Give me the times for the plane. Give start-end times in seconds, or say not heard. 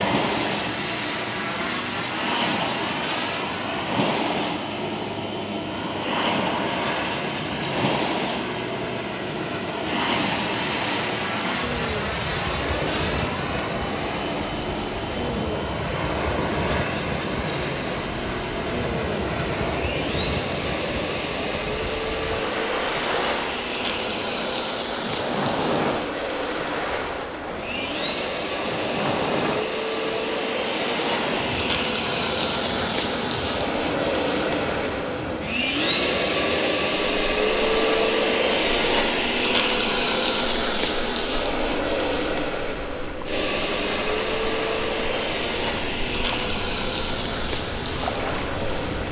0.0-49.0.